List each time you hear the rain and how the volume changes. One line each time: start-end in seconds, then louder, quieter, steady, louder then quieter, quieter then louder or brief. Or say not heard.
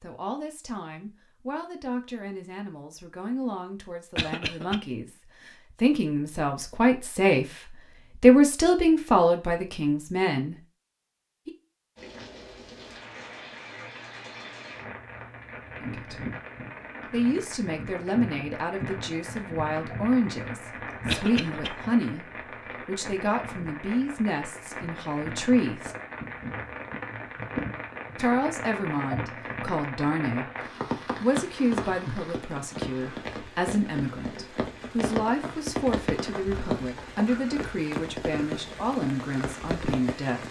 11.9-40.4 louder.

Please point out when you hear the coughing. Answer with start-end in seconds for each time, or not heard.
4.2-4.8, 21.1-21.7.